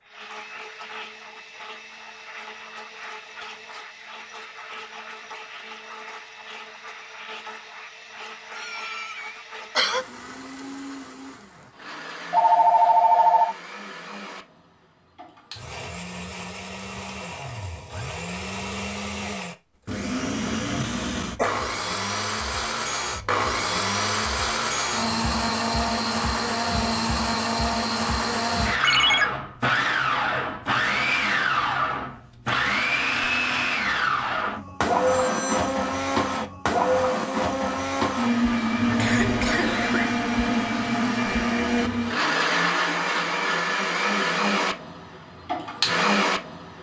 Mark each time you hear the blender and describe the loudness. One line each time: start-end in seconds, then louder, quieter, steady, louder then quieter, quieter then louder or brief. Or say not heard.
0.0-46.7 louder.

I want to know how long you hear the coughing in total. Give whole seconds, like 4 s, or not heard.
4 s.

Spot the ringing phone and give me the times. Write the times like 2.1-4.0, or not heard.
12.3-13.6, 28.8-29.2, 35.0-35.8.